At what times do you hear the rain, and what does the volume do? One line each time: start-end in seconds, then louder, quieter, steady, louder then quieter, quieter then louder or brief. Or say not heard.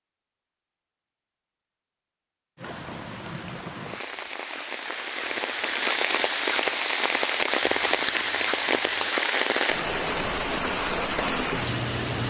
2.5-12.2 louder.